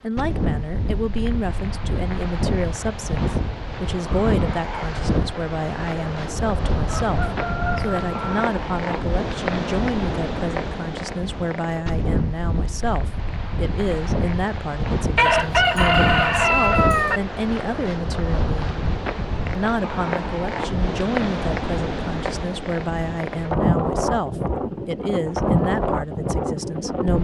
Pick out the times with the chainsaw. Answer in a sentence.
The chainsaw can't be heard in this clip.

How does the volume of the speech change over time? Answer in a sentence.
The loudness of the speech stays about the same.